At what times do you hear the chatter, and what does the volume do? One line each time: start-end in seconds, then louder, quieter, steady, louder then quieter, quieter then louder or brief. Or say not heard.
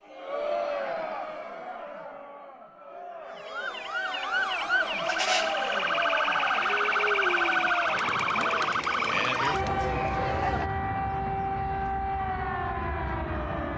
0.0-10.7 quieter then louder.